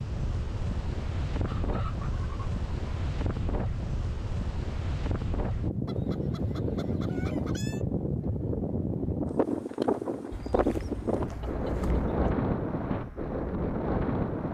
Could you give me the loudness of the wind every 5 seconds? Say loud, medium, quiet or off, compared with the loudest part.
medium, loud, loud.